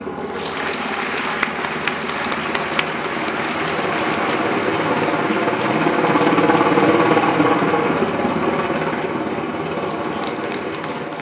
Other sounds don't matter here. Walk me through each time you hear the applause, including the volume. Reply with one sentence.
You can hear the applause from 0.0 to 11.1 s, getting quieter.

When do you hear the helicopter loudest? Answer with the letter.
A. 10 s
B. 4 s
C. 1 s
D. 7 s
D.